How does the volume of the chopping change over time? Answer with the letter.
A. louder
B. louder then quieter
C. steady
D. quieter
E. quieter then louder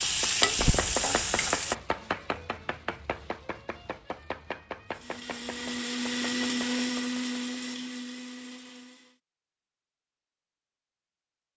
D.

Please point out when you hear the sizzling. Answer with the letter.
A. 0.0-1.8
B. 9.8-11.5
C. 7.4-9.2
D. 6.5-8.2
A.